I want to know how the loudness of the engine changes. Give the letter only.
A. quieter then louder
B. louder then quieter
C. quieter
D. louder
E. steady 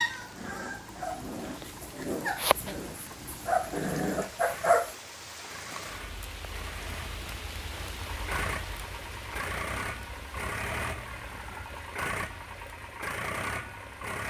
D.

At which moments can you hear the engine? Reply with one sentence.
The engine can be heard from 0.0 to 14.2 s.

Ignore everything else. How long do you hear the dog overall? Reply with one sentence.
The dog can be heard for 5 seconds in total.